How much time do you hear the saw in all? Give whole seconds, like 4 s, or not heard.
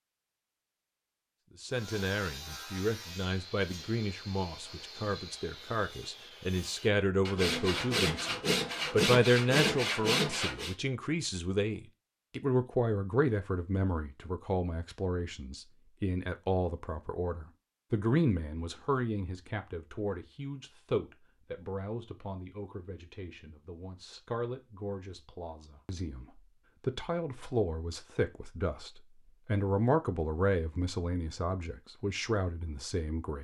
9 s.